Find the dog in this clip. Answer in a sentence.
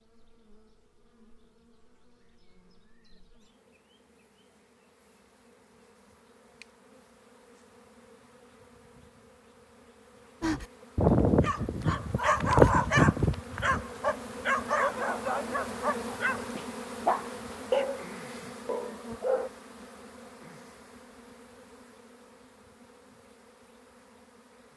You can hear the dog from 10.4 to 19.5 s.